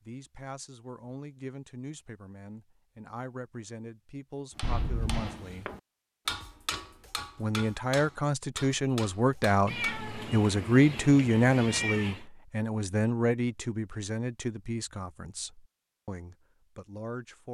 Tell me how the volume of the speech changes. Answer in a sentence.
The loudness of the speech goes up, then down.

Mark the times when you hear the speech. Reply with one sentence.
The speech can be heard from 0.0 to 5.7 s and from 7.3 to 17.4 s.